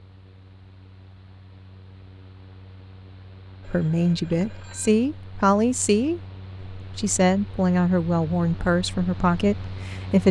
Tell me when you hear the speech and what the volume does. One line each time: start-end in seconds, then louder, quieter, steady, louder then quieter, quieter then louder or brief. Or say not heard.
3.6-10.2 steady.